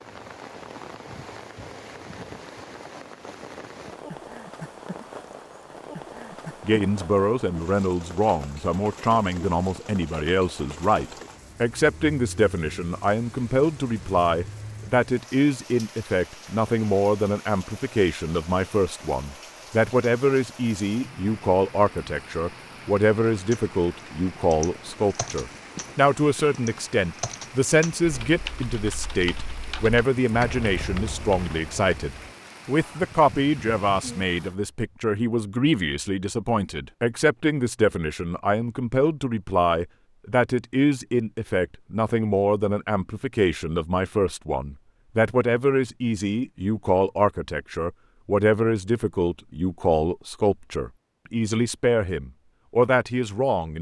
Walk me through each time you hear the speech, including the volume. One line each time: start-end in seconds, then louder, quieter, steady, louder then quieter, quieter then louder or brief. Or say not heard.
6.6-53.7 steady.